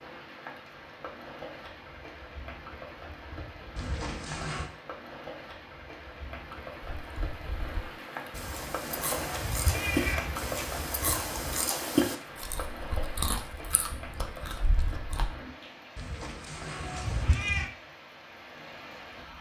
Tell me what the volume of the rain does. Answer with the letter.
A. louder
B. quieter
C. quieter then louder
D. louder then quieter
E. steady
D.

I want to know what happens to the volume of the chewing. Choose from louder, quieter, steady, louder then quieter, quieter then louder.
louder then quieter.